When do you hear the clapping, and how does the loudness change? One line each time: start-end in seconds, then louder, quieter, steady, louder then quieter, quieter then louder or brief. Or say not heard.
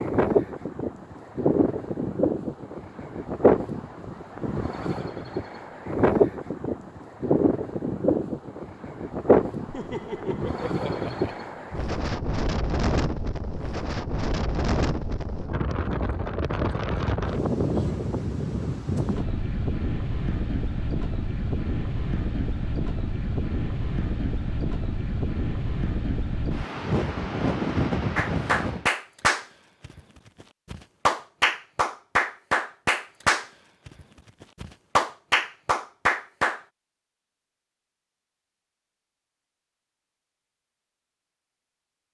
28.1-36.6 steady.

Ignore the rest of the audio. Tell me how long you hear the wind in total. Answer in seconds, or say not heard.
29 s.